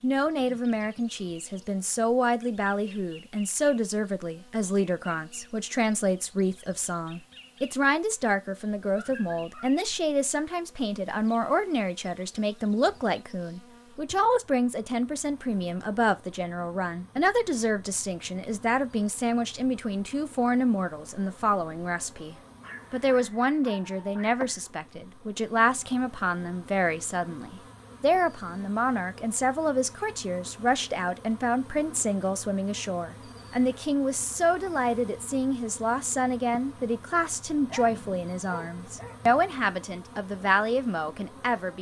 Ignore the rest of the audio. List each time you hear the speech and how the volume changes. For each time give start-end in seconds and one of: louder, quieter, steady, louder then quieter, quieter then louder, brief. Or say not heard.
0.0-41.7 steady.